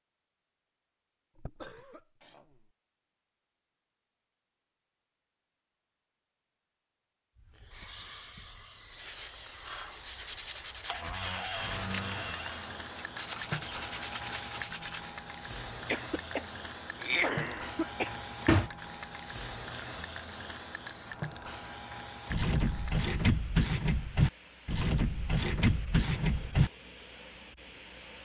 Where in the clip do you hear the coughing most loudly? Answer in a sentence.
The loudest moment of the coughing is at 17 seconds.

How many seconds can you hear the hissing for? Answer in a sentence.
You can hear the hissing for 21 seconds altogether.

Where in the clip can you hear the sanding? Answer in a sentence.
You can hear the sanding from 8.9 to 15.2 s.